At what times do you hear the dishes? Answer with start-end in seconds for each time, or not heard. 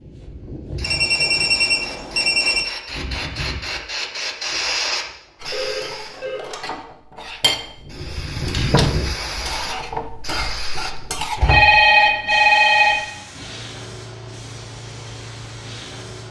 5.4-11.8.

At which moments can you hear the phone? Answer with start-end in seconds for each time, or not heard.
0.8-2.6, 5.5-6.7, 11.4-12.9.